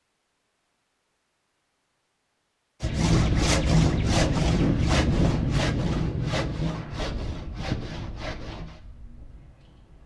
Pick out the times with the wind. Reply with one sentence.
The wind can be heard from 2.8 to 10.0 s.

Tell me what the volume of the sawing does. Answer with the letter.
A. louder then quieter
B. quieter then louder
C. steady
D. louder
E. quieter
E.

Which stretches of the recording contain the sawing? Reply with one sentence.
You can hear the sawing from 2.8 to 8.8 s.